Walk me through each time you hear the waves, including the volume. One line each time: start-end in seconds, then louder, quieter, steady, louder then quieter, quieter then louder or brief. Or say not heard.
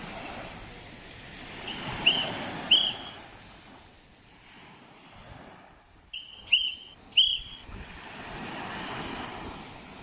0.0-9.9 quieter then louder.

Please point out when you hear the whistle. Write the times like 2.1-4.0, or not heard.
1.9-3.1, 6.1-7.6.